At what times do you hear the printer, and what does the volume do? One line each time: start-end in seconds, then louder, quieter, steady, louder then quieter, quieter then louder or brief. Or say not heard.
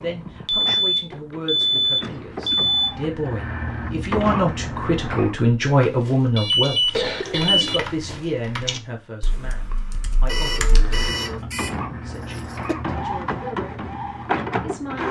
0.0-5.5 louder
10.6-15.0 louder.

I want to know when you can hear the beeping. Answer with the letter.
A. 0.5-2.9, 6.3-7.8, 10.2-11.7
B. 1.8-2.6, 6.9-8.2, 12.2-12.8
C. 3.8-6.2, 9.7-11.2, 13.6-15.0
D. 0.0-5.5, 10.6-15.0
A.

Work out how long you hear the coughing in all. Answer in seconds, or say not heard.
3 s.